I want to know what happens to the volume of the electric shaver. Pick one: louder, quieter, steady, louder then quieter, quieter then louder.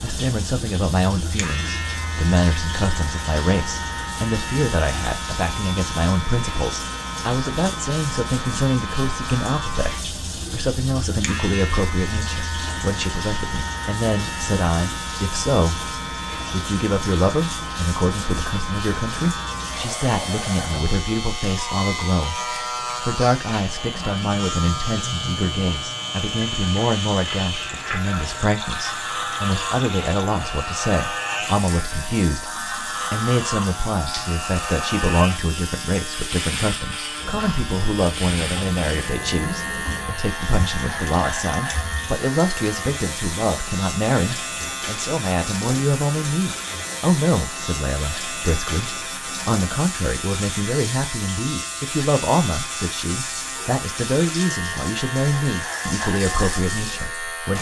steady.